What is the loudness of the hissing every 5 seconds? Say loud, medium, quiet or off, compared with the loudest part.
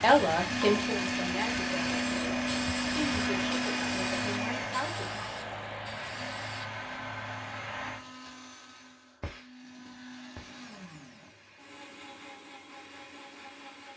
loud, loud, quiet.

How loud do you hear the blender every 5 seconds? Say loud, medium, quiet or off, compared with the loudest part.
loud, quiet, quiet.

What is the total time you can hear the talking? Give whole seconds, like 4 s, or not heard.
5 s.